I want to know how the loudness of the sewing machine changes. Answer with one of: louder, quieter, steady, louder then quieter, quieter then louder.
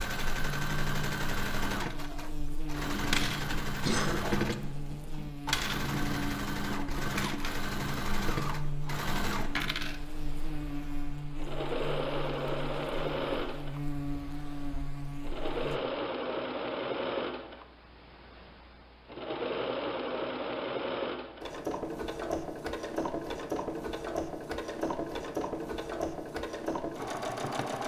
steady.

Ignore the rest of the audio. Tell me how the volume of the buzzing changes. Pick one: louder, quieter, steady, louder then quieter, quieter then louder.
steady.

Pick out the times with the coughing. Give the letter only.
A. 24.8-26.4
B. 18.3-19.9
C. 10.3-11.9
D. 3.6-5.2
D.